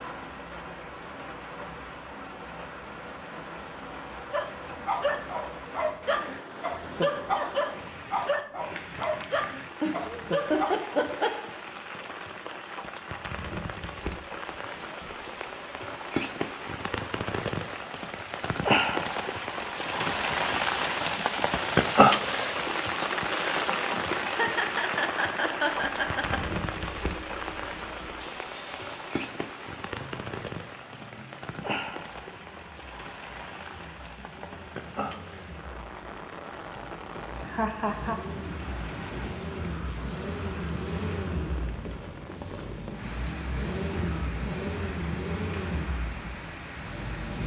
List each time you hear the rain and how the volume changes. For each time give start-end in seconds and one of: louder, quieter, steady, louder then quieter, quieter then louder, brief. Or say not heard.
0.0-47.4 louder then quieter.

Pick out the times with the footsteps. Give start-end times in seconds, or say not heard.
not heard.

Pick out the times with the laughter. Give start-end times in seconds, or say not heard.
9.8-11.3, 24.2-26.4, 37.5-38.2.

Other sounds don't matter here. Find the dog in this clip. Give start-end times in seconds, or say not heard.
4.3-10.8.